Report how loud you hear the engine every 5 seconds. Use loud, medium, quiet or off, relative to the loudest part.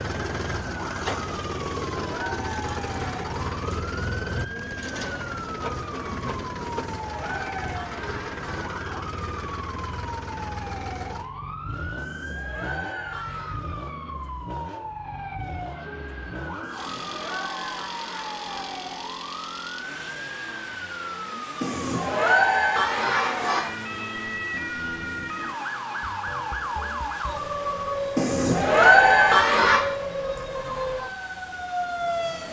loud, loud, medium, medium, medium, medium, quiet.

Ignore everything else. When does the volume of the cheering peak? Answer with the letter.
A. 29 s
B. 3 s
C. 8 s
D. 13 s
A.